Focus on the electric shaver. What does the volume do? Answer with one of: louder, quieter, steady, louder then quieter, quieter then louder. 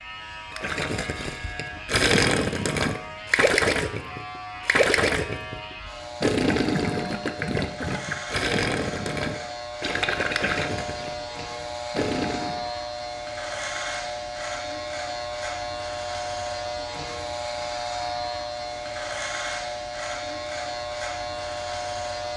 louder.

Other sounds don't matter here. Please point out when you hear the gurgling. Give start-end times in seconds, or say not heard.
0.5-12.7.